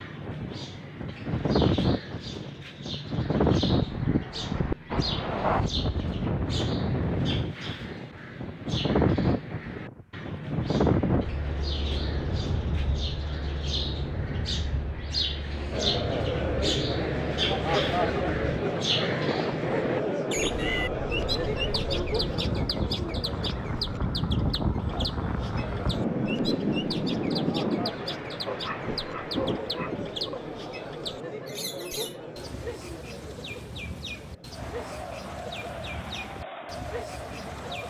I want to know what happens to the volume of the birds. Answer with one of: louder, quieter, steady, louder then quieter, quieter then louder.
louder then quieter.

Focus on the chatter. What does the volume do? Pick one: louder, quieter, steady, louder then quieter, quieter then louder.
quieter.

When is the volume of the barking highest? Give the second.
29 s.